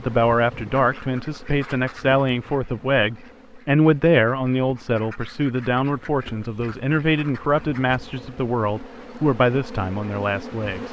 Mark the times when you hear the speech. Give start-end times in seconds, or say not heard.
0.0-10.8.